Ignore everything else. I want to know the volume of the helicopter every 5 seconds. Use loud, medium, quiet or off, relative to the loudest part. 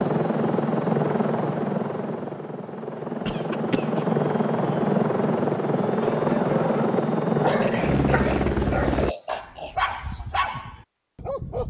loud, loud, off.